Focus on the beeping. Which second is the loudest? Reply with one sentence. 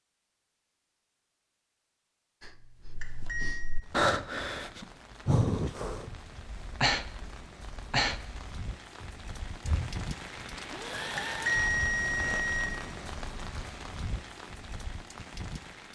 The loudest moment of the beeping is at 12 seconds.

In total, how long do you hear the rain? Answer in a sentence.
The rain can be heard for 12 seconds in total.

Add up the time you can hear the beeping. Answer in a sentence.
The beeping can be heard for 2 seconds in total.